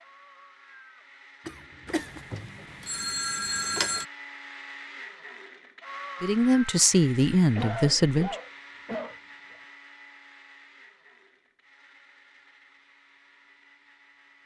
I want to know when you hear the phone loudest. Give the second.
4 s.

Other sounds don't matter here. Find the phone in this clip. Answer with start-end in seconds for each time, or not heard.
1.9-4.0.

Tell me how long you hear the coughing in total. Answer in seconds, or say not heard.
3 s.